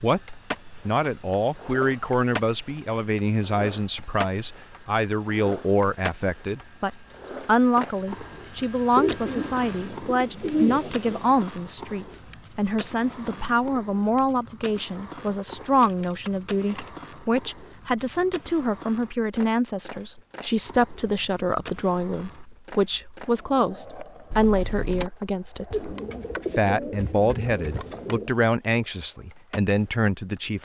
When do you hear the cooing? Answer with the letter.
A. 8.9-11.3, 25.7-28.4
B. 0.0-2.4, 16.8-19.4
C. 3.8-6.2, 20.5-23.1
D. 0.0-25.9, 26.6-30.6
A.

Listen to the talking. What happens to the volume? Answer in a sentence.
The volume of the talking stays about the same.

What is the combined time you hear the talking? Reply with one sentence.
The talking can be heard for 30 seconds in total.